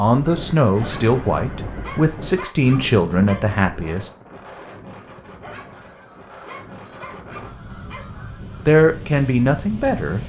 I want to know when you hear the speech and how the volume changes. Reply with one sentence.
The speech can be heard from 0.0 to 4.1 s, at a steady volume; and briefly from 8.7 to 10.2 s.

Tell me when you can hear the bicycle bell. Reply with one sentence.
You can't hear the bicycle bell here.